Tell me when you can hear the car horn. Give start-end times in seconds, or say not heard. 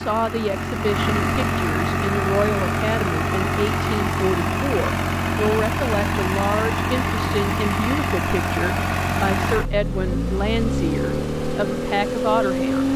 not heard.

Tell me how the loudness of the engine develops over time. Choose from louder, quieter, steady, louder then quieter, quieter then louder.
steady.